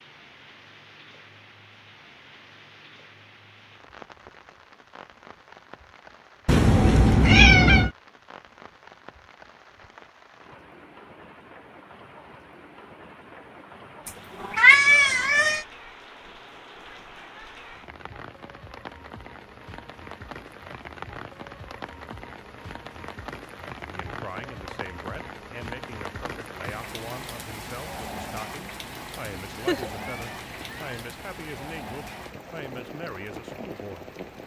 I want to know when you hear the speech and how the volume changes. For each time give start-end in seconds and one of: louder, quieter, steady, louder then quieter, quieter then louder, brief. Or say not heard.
23.8-34.4 steady.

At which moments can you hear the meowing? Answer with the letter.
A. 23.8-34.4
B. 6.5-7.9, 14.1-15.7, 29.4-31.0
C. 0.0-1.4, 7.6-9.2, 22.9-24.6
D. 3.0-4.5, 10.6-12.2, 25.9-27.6
B.